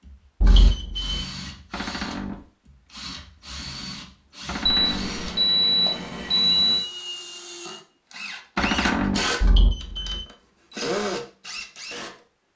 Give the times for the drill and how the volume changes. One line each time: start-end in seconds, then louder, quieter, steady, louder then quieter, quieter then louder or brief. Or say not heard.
0.0-12.2 louder.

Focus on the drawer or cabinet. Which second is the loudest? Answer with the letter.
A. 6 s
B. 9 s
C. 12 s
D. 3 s
B.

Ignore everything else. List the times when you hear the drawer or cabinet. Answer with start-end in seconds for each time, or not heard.
1.7-2.5, 4.5-5.2, 8.6-9.3.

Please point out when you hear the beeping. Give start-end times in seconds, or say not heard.
0.4-1.2, 4.7-6.8, 9.4-10.2.